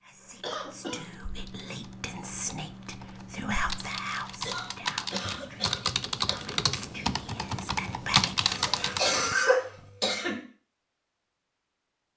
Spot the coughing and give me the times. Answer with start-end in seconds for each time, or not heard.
0.4-1.1, 4.4-6.5, 8.4-10.4.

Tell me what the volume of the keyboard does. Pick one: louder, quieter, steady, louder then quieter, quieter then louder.
louder.